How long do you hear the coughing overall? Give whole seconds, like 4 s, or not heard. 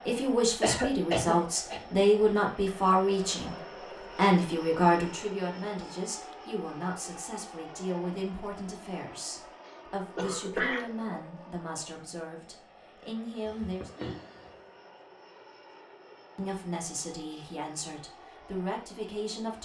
3 s.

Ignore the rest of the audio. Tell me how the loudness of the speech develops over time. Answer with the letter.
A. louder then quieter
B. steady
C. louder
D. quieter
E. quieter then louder
D.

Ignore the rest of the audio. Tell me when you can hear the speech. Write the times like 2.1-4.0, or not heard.
0.1-13.9, 16.4-19.6.